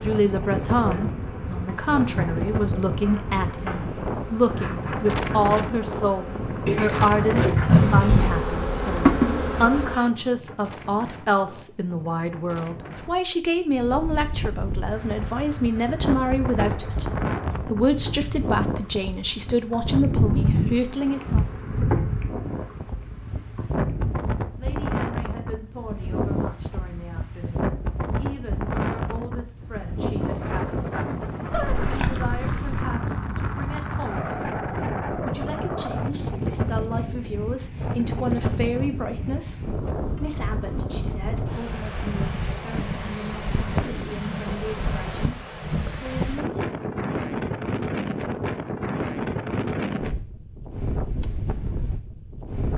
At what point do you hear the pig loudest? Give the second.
8 s.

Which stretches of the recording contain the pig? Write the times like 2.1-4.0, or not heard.
6.7-8.4, 31.5-32.9.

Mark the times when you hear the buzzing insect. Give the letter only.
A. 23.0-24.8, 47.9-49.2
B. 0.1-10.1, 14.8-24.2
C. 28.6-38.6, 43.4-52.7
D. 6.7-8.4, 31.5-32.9
B.